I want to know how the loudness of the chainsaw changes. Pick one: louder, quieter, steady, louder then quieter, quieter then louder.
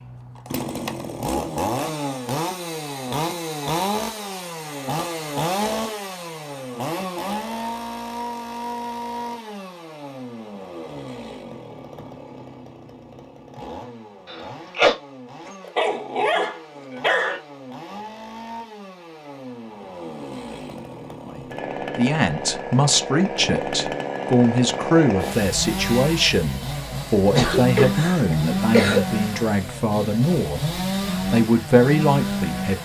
quieter then louder.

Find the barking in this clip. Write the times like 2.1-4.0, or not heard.
15.4-17.4.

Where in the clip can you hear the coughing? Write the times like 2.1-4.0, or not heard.
14.2-14.9, 27.4-29.1.